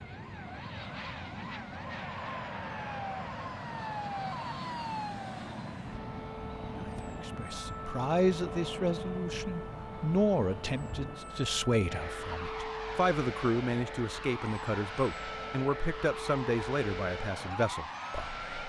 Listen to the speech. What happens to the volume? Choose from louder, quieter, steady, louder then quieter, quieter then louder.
steady.